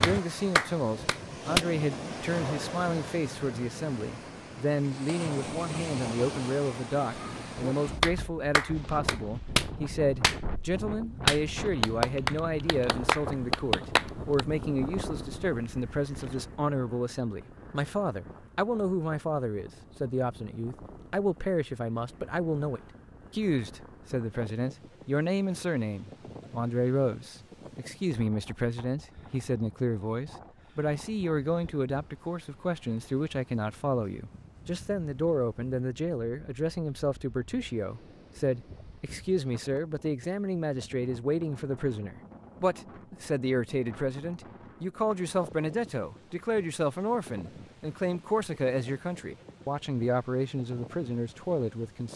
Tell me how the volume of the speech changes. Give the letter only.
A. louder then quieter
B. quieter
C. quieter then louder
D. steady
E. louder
D.